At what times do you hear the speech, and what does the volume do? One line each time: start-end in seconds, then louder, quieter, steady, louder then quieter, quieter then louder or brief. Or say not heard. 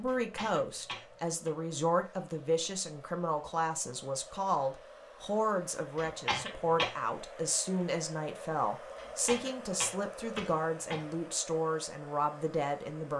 0.0-13.1 steady.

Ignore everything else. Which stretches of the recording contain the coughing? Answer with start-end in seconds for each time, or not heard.
0.1-1.5, 6.0-7.0, 8.9-11.1.